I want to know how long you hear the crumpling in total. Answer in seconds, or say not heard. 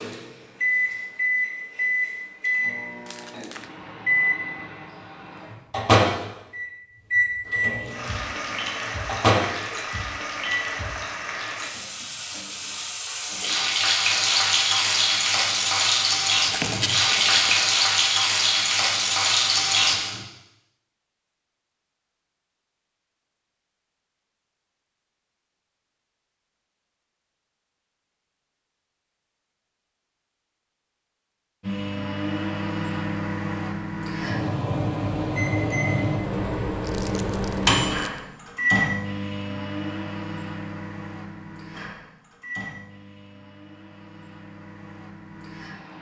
3 s.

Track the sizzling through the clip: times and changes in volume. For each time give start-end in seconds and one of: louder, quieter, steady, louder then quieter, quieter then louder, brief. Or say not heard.
7.8-20.2 louder.